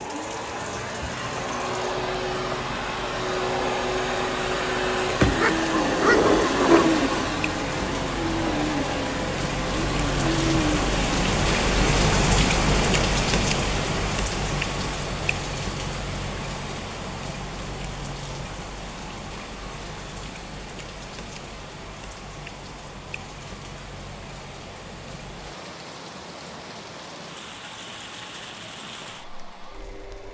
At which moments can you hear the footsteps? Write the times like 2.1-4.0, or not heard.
not heard.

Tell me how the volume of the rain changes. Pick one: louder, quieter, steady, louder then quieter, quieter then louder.
louder then quieter.